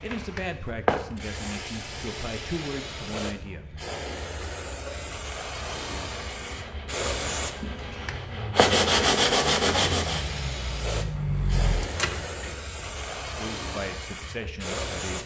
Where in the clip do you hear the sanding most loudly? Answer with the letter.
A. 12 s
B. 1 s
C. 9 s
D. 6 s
C.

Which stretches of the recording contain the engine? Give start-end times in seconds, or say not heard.
8.0-12.7.